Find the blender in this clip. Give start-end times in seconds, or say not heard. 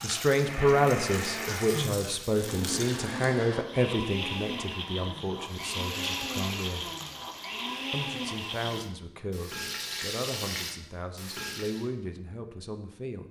0.0-8.8.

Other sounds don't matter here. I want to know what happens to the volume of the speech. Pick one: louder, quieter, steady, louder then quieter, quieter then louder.
quieter.